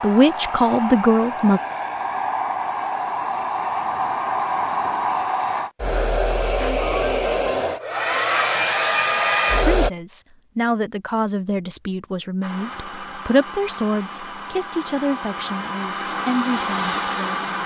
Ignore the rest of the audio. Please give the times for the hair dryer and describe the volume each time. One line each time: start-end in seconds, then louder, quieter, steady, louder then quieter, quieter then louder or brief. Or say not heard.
0.0-9.9 louder
12.4-17.6 louder.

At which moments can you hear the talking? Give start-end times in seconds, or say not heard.
0.0-1.6, 9.6-17.4.